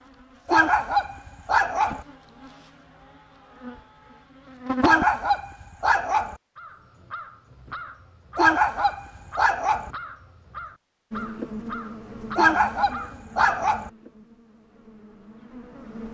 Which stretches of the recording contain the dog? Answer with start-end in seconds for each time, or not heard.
0.5-2.0, 4.8-6.3, 8.3-9.9, 12.3-13.9.